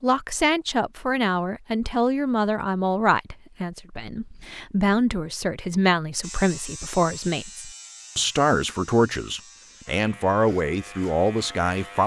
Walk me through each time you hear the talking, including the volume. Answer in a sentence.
The talking can be heard from 0.0 to 12.0 s, at a steady volume.